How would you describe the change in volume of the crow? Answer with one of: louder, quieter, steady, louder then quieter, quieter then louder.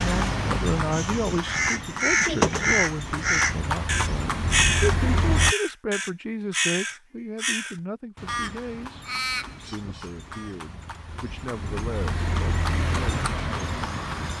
quieter.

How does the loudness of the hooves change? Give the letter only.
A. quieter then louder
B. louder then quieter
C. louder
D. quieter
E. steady
A.